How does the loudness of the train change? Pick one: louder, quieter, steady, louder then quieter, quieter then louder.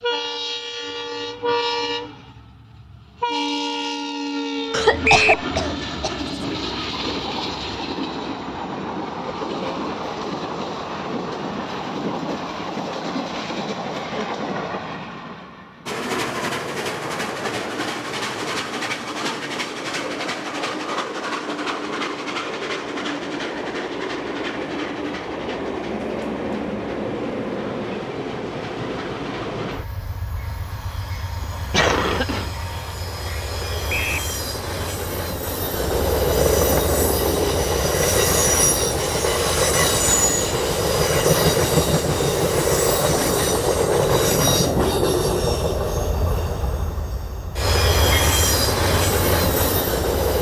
louder.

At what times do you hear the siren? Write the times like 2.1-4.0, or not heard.
not heard.